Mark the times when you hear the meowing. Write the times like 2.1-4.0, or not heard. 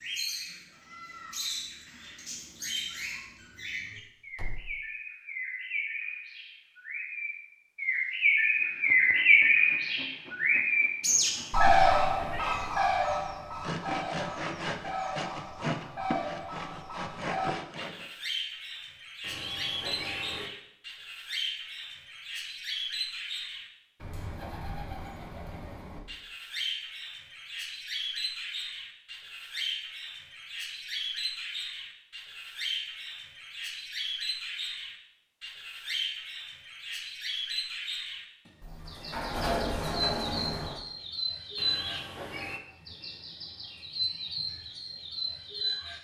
11.1-12.8, 19.2-20.5, 41.5-42.6.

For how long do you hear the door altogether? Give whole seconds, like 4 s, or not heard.
3 s.